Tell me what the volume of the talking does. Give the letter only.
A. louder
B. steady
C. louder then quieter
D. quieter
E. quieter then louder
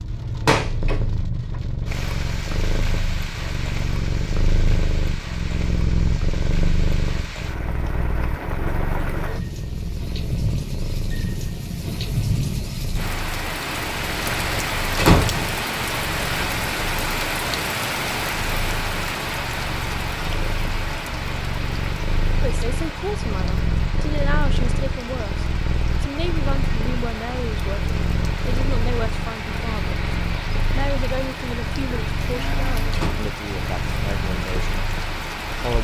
B.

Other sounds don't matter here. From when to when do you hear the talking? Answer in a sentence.
You can hear the talking from 22.4 to 30.0 s and from 30.8 to 35.8 s.